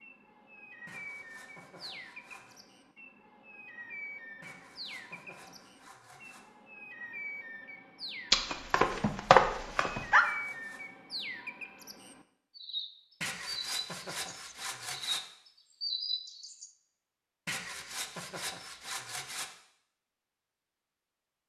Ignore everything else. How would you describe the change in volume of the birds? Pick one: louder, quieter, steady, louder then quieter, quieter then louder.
louder.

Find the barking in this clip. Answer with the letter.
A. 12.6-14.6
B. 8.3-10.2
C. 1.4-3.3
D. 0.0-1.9
B.